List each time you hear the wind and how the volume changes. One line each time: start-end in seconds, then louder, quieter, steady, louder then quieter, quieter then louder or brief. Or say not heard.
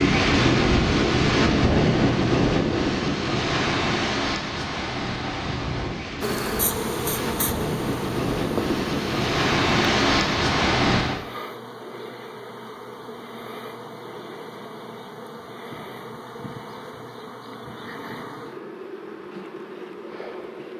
0.0-11.2 quieter then louder.